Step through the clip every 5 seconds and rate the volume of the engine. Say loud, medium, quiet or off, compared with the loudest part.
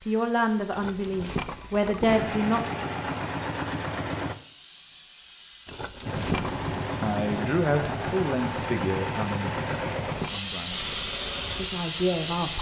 loud, loud, medium.